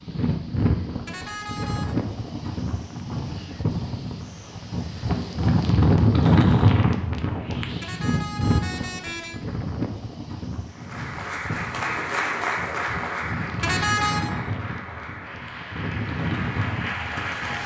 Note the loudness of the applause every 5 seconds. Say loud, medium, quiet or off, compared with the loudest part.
off, off, loud, loud.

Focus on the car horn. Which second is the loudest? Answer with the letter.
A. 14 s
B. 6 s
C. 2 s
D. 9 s
A.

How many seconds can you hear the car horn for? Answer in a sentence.
The car horn can be heard for 3 seconds in total.